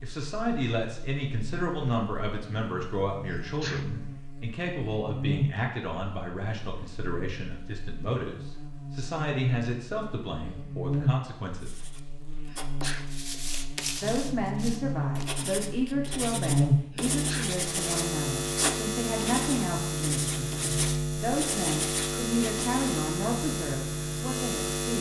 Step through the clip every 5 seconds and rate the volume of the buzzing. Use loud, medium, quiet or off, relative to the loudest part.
medium, medium, medium, loud, loud.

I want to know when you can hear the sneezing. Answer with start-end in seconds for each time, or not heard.
3.2-3.9, 12.4-13.2, 16.9-17.6.